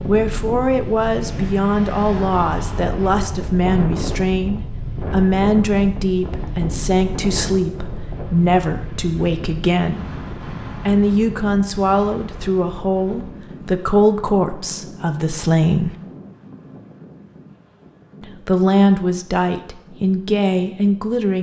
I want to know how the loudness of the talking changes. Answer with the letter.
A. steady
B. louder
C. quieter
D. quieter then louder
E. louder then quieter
A.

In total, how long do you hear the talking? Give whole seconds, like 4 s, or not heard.
19 s.